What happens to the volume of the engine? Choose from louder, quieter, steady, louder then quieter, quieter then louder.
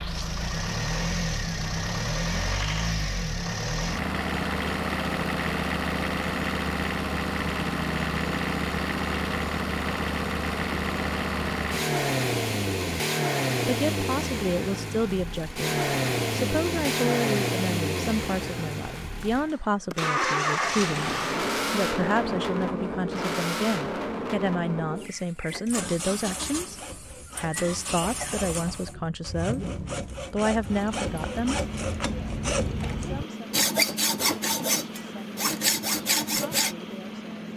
quieter.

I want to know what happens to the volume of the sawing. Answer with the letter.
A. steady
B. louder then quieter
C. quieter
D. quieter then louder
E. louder
E.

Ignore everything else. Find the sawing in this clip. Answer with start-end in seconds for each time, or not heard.
25.6-36.8.